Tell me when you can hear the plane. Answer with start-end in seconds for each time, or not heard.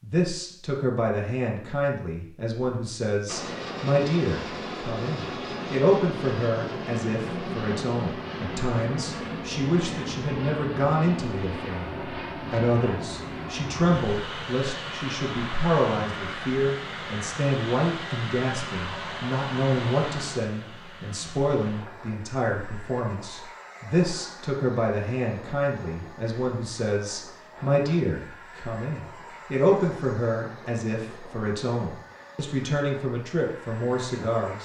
3.2-34.6.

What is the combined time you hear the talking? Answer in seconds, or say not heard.
34 s.